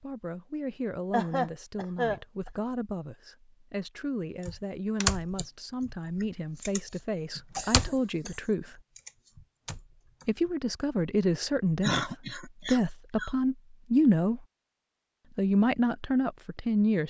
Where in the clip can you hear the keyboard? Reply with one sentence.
You can hear the keyboard from 4.5 to 8.0 s and from 8.9 to 10.4 s.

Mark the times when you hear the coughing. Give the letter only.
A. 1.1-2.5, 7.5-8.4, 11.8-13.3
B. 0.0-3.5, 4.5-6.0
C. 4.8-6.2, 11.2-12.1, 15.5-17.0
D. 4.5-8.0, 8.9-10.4
A.